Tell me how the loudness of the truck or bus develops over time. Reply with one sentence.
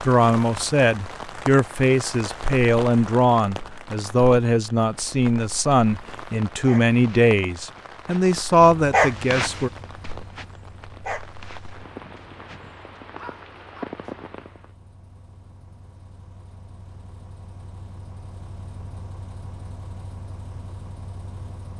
The loudness of the truck or bus goes down, then up.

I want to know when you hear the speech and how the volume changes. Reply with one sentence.
You can hear the speech from 0.1 to 9.7 s, at a steady volume.